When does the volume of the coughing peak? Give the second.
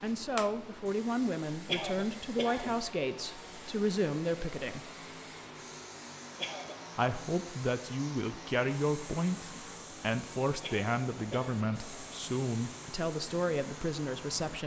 2 s.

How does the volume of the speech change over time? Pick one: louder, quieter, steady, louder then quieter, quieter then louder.
steady.